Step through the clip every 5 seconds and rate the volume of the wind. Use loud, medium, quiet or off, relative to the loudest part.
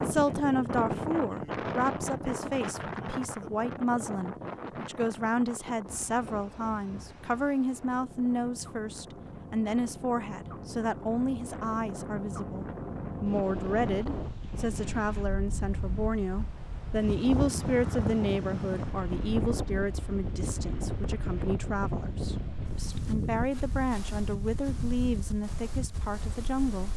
loud, medium, loud, loud, loud, medium.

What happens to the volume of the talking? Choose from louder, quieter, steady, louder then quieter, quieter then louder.
steady.